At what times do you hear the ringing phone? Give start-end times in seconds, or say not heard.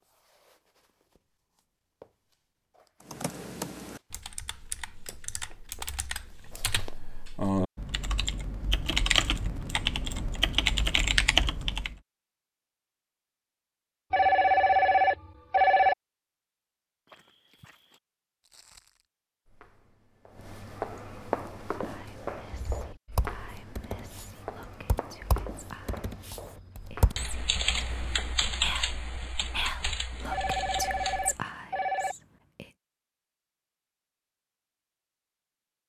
14.1-15.9, 30.3-32.1.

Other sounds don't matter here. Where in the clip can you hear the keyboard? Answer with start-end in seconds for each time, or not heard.
3.0-12.0, 22.5-31.4.